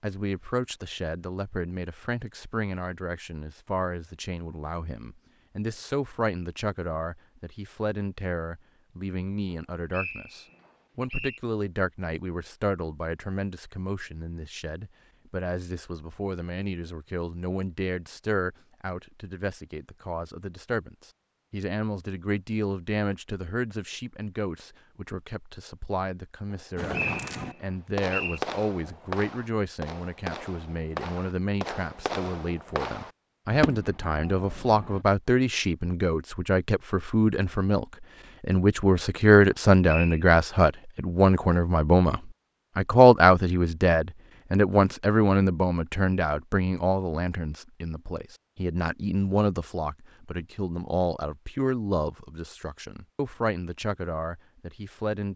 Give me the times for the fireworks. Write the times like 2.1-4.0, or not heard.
26.8-35.0.